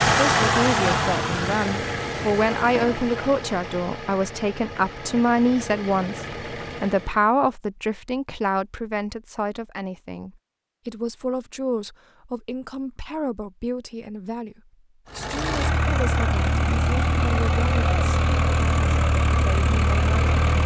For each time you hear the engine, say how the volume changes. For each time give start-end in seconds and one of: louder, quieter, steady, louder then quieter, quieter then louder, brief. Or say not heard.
0.0-7.2 quieter
15.1-20.6 steady.